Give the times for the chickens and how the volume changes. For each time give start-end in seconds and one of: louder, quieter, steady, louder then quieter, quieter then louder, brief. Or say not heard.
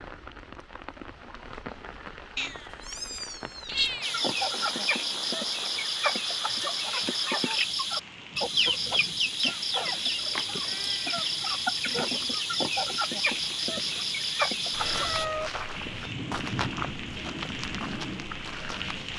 4.0-15.2 steady.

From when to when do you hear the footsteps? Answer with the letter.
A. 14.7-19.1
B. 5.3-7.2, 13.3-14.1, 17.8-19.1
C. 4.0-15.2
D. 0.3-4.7
A.